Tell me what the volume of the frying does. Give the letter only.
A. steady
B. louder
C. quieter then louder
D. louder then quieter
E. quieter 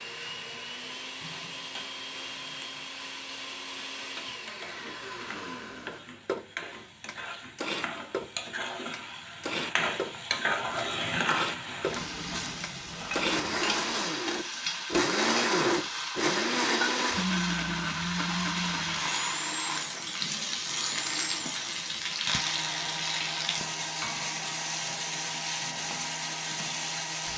B.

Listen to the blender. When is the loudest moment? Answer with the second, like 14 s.
15 s.